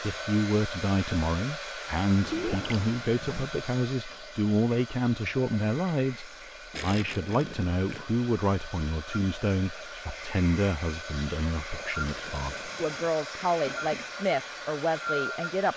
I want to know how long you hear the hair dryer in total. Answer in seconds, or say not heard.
16 s.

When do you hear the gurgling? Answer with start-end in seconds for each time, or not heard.
2.3-2.8, 6.7-8.1, 12.0-13.1.